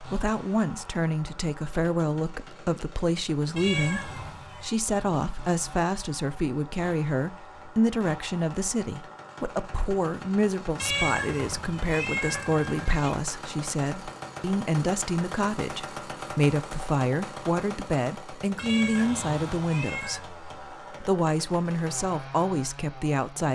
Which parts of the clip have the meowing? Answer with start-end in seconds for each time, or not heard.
3.5-4.8, 10.8-13.1, 18.6-20.2.